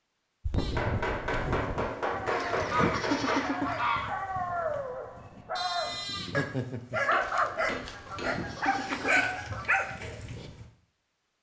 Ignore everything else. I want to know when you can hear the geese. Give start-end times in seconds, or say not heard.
2.2-4.2, 7.2-9.7.